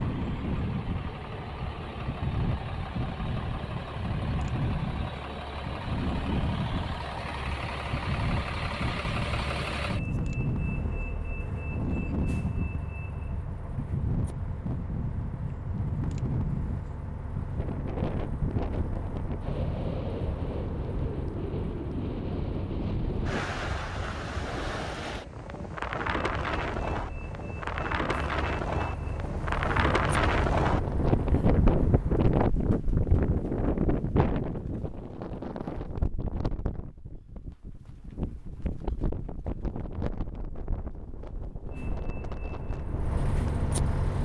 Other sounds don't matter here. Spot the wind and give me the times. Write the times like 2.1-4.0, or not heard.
0.0-44.1.